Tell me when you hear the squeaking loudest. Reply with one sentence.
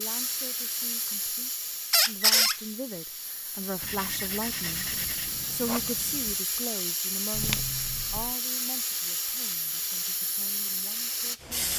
The volume of the squeaking peaks at 2 seconds.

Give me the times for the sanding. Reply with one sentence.
The sanding can be heard from 3.8 to 6.4 s.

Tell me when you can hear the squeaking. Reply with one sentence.
The squeaking can be heard from 1.9 to 2.5 s and from 7.3 to 8.3 s.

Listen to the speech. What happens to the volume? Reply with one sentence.
The volume of the speech goes up, then down.